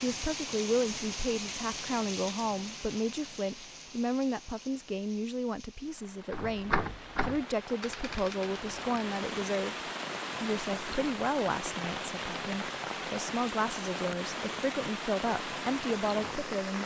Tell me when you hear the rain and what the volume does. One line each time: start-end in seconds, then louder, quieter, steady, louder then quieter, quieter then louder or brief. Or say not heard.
0.0-16.8 quieter then louder.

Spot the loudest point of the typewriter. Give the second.
7 s.